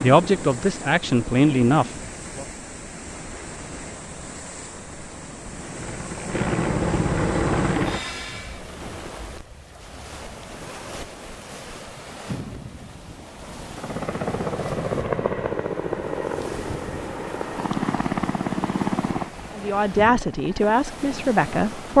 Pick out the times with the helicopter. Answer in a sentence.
The helicopter can be heard from 0.0 to 2.1 s, from 5.5 to 8.6 s and from 13.7 to 21.9 s.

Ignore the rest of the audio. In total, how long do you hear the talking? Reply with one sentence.
You can hear the talking for 5 seconds altogether.